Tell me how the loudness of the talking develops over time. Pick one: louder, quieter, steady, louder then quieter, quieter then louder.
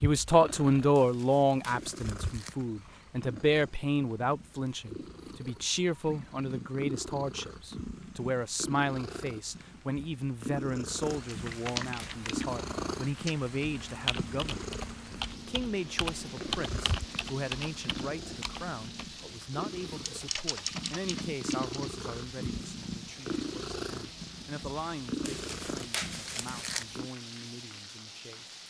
quieter.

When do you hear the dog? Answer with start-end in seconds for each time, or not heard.
not heard.